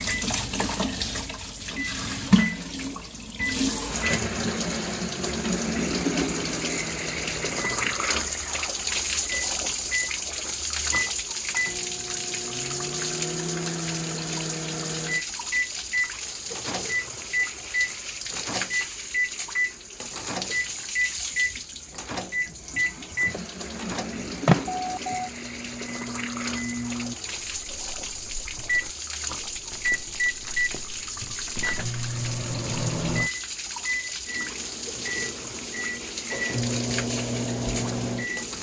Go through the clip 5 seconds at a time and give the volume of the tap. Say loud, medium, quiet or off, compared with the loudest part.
loud, loud, loud, medium, medium, medium, medium, medium.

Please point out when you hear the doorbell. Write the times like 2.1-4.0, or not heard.
24.6-25.3.